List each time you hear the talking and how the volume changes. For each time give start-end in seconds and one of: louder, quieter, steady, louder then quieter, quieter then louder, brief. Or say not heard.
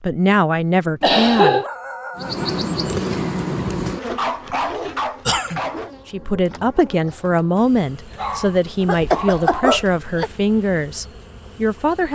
0.0-1.6 brief
6.0-12.1 steady.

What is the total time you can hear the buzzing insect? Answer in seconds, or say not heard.
10 s.